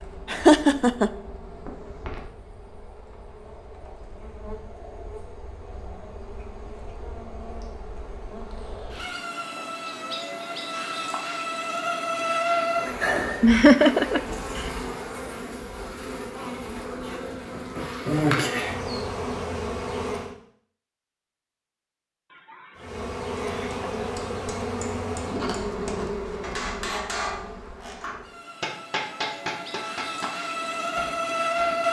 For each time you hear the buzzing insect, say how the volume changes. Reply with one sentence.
The buzzing insect can be heard from 0.0 to 20.4 s, getting louder; and from 22.8 to 31.8 s, getting quieter then louder.